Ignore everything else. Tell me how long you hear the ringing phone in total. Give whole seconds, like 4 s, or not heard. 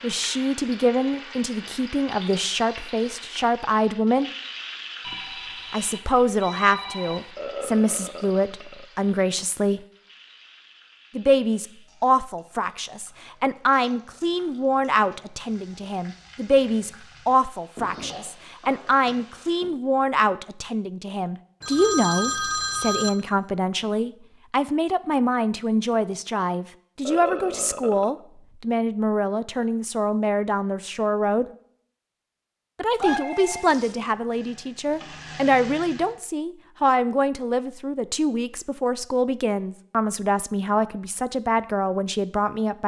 5 s.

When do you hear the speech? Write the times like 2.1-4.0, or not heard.
0.0-4.3, 5.7-9.8, 11.2-31.4, 32.8-42.8.